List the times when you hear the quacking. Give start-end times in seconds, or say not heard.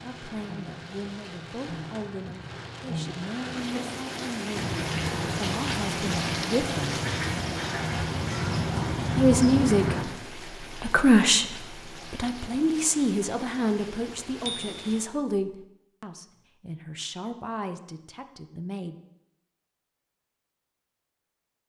4.5-10.1.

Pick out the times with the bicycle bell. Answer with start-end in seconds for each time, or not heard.
14.4-15.0.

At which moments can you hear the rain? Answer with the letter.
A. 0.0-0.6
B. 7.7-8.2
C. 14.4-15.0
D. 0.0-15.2
D.